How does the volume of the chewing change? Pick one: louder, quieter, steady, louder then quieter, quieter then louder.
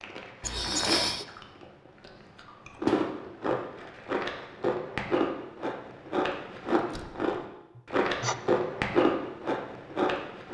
louder.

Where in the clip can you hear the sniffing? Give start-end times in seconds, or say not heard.
0.4-1.2, 7.8-8.3.